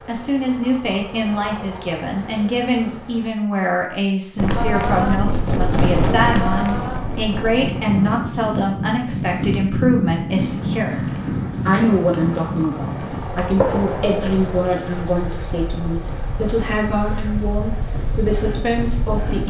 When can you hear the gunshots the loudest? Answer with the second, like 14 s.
14 s.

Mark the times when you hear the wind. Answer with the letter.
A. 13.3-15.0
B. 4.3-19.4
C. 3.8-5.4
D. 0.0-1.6
B.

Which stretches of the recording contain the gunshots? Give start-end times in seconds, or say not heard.
13.3-15.0.